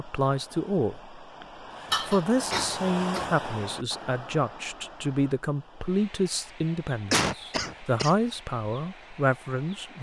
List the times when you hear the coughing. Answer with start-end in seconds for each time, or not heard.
1.9-3.4, 7.1-8.1.